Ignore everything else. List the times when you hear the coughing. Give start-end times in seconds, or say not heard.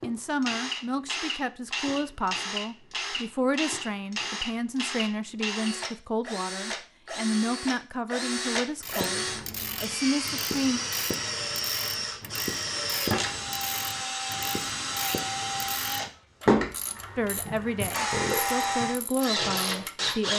not heard.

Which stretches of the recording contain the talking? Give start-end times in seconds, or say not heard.
0.0-10.8, 17.1-20.3.